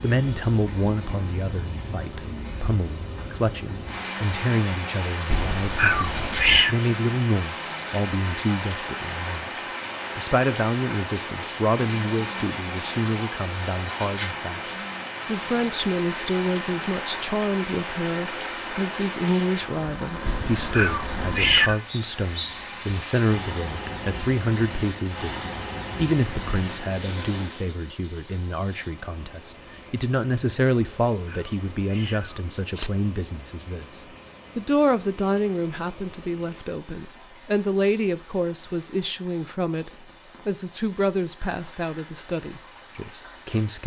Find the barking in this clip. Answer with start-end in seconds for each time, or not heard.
not heard.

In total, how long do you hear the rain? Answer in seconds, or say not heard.
44 s.